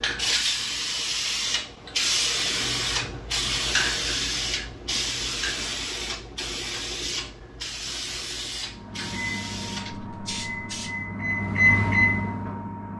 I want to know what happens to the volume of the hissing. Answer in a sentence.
The volume of the hissing goes down.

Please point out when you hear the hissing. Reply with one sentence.
The hissing can be heard from 0.0 to 10.9 s.